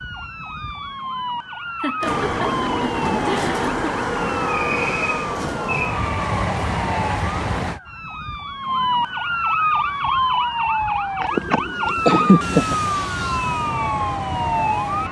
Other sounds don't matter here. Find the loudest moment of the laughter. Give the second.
12 s.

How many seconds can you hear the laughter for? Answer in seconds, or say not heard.
4 s.